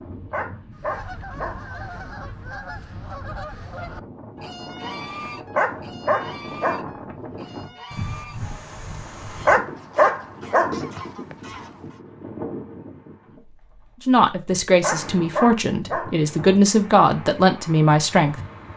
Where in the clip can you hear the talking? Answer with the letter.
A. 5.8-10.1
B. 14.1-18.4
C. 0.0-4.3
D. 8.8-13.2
B.